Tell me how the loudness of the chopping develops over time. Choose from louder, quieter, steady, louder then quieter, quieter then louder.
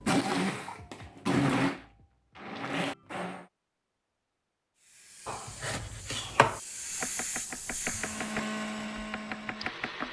quieter.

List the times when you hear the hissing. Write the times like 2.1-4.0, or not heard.
4.8-8.4.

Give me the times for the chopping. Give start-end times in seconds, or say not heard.
5.2-10.0.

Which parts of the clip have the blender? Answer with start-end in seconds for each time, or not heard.
0.0-3.5, 7.8-10.0.